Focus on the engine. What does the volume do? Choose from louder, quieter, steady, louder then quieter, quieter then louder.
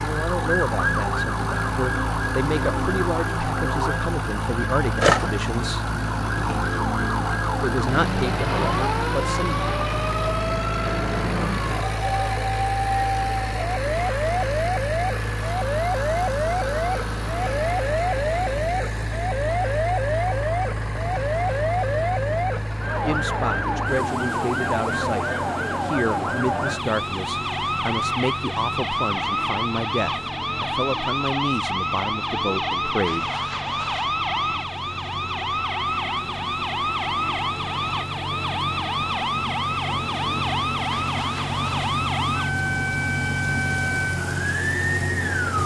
quieter then louder.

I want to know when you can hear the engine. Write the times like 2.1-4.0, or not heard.
0.0-45.6.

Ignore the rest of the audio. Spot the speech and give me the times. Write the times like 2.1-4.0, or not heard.
0.0-5.9, 7.6-9.7, 23.1-33.3.